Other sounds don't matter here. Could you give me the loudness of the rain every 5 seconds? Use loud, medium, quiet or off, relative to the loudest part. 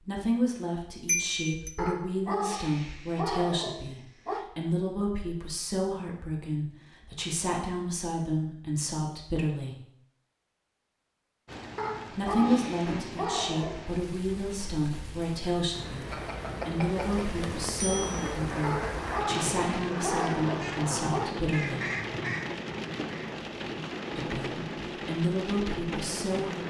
off, off, medium, loud, loud, loud.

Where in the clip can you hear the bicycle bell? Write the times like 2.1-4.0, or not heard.
1.1-1.7, 16.1-18.4.